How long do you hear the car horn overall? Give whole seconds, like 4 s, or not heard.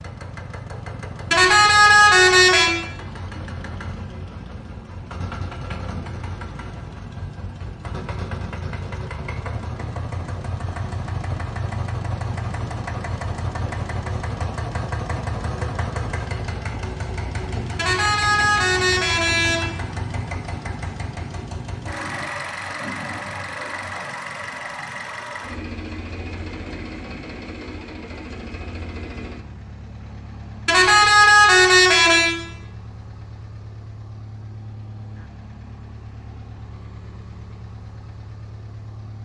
5 s.